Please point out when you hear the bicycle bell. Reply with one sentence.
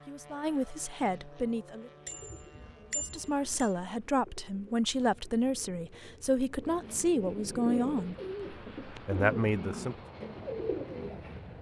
The bicycle bell can be heard from 2.0 to 3.7 s.